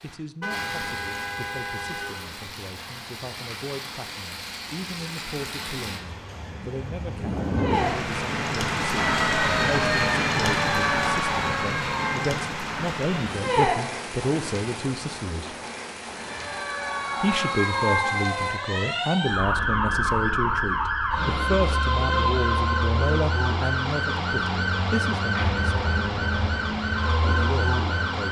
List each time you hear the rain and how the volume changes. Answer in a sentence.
The rain can be heard from 0.0 to 18.6 s, getting louder then quieter.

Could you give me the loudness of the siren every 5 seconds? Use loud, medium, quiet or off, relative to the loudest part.
off, loud, loud, loud, loud, loud.